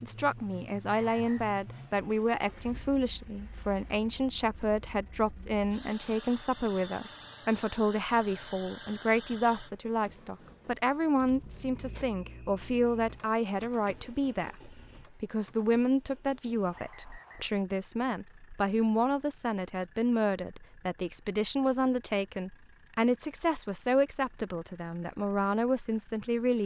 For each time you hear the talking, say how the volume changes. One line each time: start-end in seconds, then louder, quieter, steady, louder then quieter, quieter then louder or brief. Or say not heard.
0.0-26.6 steady.